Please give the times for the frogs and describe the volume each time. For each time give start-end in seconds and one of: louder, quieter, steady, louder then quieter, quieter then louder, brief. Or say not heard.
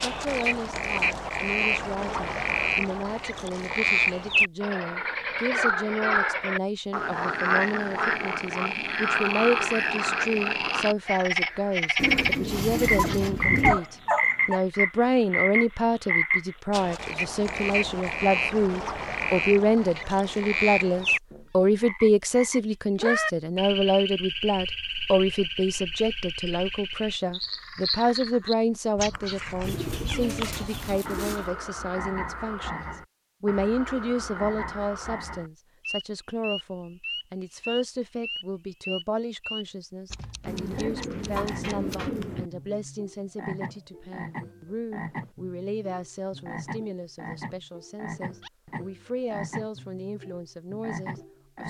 0.0-51.6 quieter.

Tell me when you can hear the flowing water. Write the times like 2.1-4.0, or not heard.
not heard.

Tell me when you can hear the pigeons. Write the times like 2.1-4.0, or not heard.
11.9-13.8, 29.6-31.6, 40.5-42.5.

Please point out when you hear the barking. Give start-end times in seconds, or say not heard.
12.9-14.6.